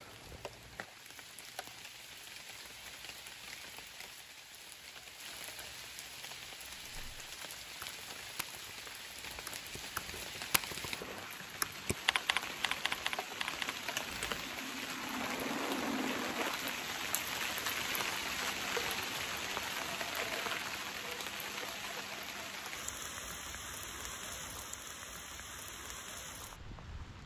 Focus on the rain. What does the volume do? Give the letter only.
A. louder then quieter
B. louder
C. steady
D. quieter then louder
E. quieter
A.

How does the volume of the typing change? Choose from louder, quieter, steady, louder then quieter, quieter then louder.
louder.